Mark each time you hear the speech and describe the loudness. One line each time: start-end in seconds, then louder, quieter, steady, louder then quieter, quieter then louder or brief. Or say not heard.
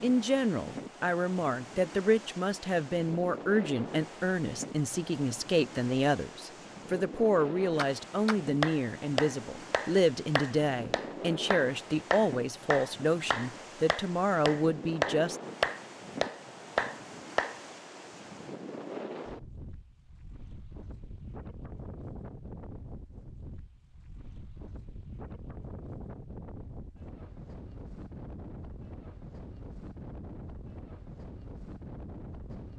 0.0-15.3 steady.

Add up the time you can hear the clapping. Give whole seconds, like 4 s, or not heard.
10 s.